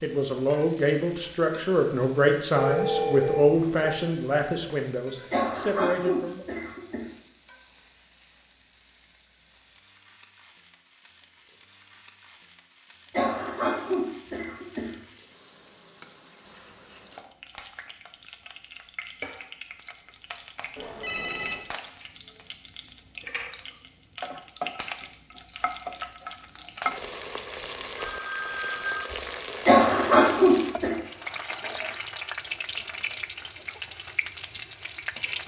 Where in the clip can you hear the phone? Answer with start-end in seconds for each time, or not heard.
2.5-4.0, 20.8-21.6, 27.9-29.1.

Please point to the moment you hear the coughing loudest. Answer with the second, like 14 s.
30 s.